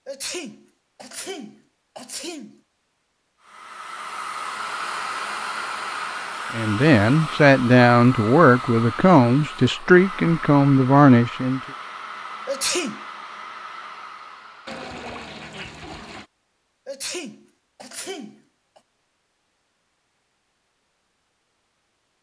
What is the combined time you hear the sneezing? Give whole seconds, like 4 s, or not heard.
5 s.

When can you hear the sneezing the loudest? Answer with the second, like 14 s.
13 s.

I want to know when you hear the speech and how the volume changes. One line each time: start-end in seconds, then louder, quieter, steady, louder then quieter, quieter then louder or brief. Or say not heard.
6.5-11.6 steady.